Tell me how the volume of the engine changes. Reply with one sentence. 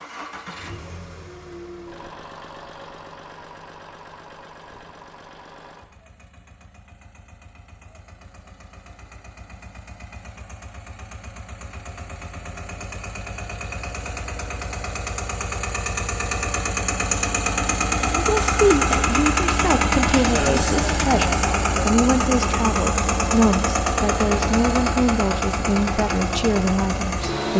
The volume of the engine goes down, then up.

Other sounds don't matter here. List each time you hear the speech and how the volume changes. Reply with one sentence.
You can hear the speech from 18.1 to 27.5 s, at a steady volume.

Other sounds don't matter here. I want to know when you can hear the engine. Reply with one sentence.
The engine can be heard from 0.0 to 27.5 s.